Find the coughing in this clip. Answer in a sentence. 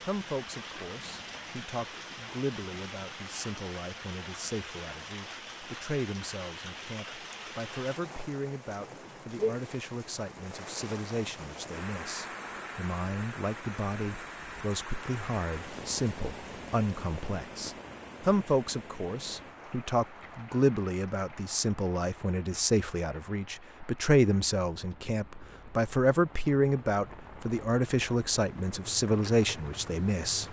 You can't hear the coughing here.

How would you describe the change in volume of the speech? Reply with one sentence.
The loudness of the speech goes up.